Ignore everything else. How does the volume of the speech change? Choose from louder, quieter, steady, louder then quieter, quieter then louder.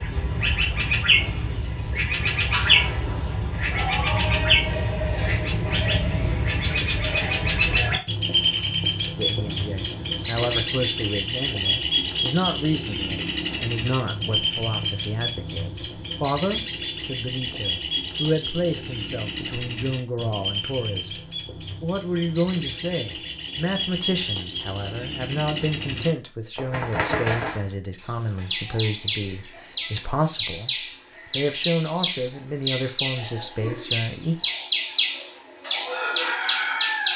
steady.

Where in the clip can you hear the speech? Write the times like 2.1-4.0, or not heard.
9.2-30.7, 31.4-34.5.